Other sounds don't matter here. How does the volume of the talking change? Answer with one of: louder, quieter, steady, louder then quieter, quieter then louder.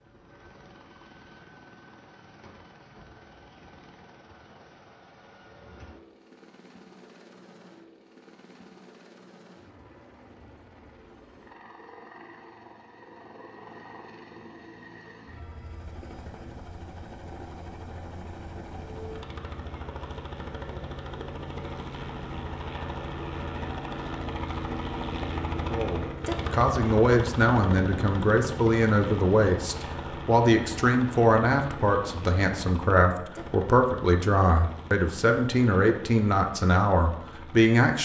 steady.